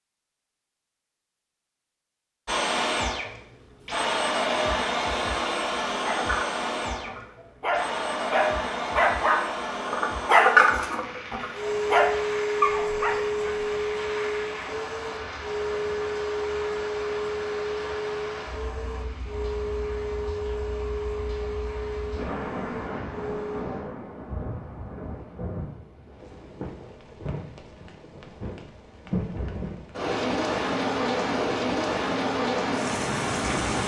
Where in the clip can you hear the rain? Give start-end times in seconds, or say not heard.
10.7-33.8.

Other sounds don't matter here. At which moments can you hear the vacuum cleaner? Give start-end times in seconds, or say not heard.
2.5-23.6.